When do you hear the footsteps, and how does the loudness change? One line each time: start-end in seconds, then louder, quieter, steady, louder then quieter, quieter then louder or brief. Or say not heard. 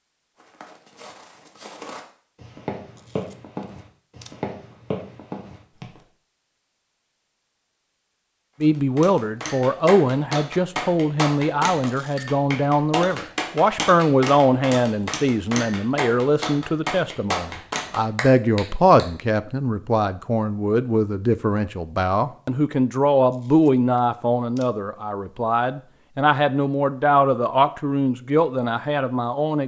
0.3-6.0 louder.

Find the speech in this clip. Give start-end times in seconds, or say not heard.
8.6-29.6.